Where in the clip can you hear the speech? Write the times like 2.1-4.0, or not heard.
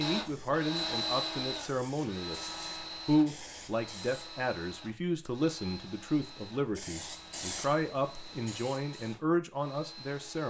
0.0-10.4.